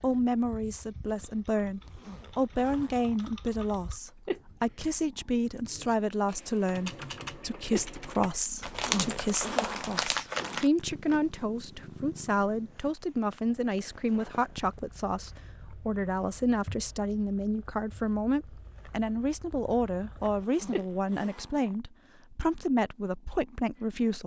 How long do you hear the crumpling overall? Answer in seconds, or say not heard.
2 s.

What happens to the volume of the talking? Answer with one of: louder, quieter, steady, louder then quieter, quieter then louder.
steady.